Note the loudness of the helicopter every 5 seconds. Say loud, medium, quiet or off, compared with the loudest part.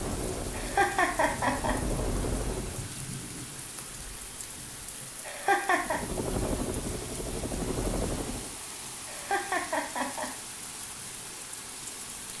loud, loud, off.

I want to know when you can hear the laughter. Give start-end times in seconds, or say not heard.
0.5-1.8, 5.2-6.0, 9.1-10.3.